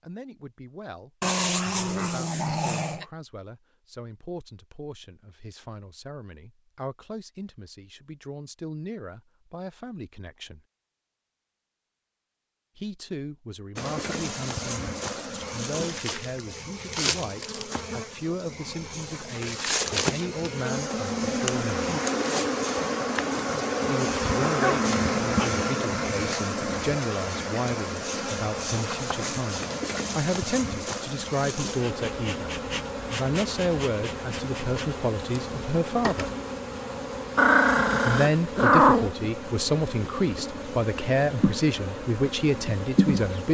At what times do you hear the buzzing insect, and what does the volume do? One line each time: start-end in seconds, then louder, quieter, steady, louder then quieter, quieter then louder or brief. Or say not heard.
13.8-43.4 louder then quieter.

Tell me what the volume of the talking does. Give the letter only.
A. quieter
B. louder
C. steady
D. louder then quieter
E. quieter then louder
B.